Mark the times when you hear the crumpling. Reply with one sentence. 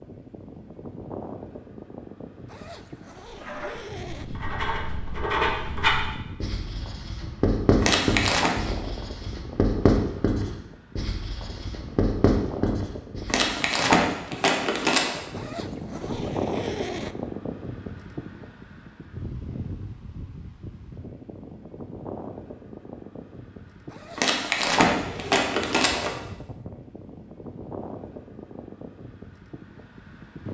The crumpling can be heard from 7.8 to 8.5 s, from 13.2 to 15.2 s and from 24.1 to 26.1 s.